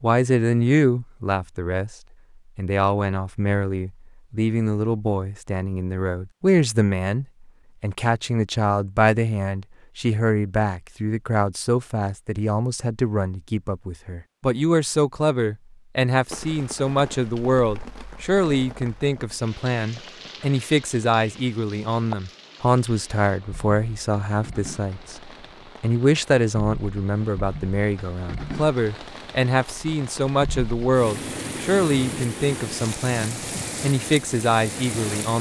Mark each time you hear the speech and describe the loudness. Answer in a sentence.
You can hear the speech briefly from 0.0 to 1.9 s; and from 2.5 to 35.3 s, at a steady volume.